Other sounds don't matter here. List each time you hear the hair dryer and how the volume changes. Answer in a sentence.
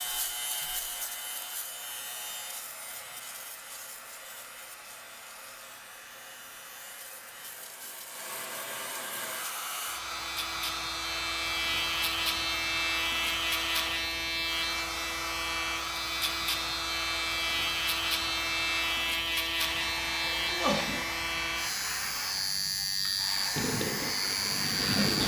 The hair dryer can be heard from 0.0 to 25.2 s, getting louder.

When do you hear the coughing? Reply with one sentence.
The coughing can be heard from 20.3 to 21.0 s.